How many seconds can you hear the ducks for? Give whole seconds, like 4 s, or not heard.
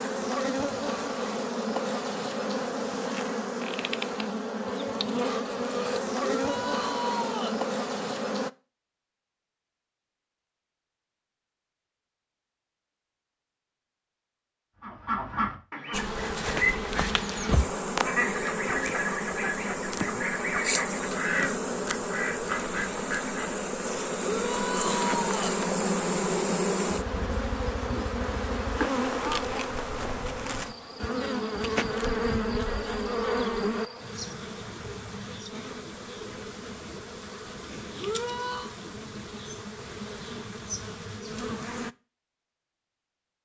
9 s.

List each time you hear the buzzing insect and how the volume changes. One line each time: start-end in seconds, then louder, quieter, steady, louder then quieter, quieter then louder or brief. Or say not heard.
0.0-8.5 steady
15.9-41.9 quieter.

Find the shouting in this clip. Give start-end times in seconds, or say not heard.
6.2-7.6, 24.2-25.6, 38.0-38.7.